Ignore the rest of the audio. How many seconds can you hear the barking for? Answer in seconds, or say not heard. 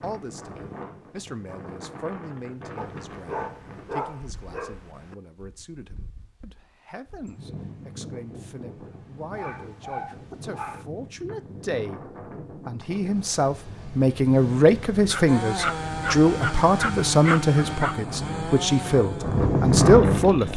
7 s.